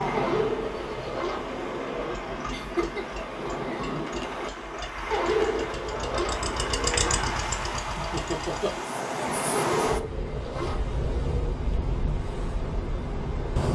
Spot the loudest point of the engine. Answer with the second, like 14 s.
7 s.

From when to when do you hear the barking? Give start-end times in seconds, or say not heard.
0.1-2.1, 5.1-7.1, 9.5-11.6.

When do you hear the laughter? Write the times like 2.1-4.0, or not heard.
2.5-4.0, 8.0-8.7.